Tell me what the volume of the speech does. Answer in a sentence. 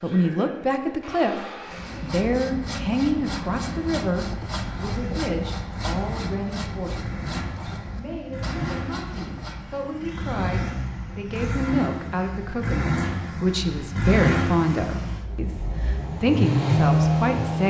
The loudness of the speech goes down, then up.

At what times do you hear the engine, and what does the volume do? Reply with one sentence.
You can hear the engine from 0.0 to 17.6 s, getting louder.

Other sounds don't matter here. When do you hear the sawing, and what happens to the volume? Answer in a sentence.
You can hear the sawing from 1.7 to 9.9 s, at a steady volume.